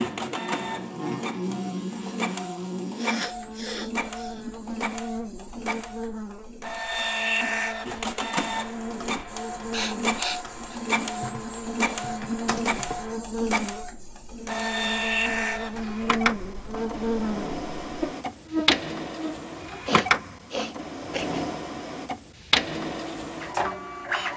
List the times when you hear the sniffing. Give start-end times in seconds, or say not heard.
3.0-4.5, 9.7-10.8, 19.9-21.4.